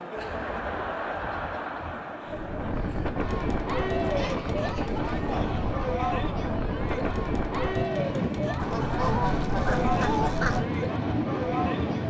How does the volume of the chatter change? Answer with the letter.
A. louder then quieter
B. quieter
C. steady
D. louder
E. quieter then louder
C.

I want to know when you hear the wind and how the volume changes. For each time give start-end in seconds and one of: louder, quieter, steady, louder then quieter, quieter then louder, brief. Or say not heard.
2.2-12.0 steady.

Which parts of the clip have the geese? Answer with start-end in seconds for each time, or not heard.
0.2-2.0, 4.2-6.2, 8.6-10.7.